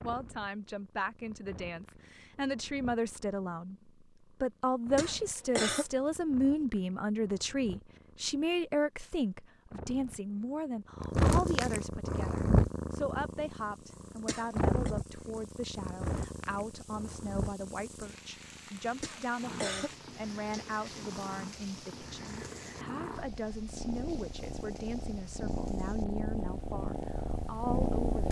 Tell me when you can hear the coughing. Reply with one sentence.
You can hear the coughing from 5.0 to 5.8 s, from 14.2 to 14.9 s and from 19.0 to 19.9 s.